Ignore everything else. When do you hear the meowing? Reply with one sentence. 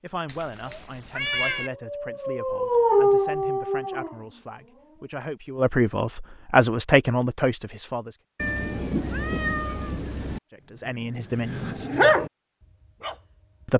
The meowing can be heard from 0.2 to 1.7 s and from 8.3 to 10.4 s.